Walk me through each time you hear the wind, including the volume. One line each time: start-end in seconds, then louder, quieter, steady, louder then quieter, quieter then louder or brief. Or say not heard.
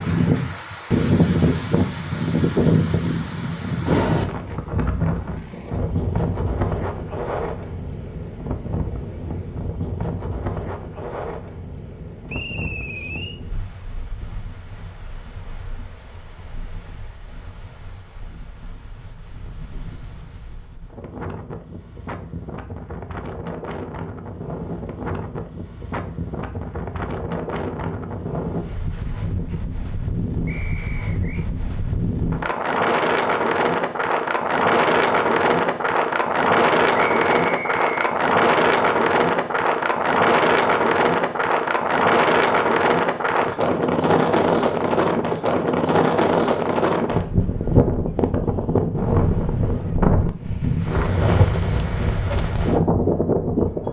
0.0-53.8 quieter then louder.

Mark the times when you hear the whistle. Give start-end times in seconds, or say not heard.
12.2-13.4, 30.4-31.4, 37.0-38.1.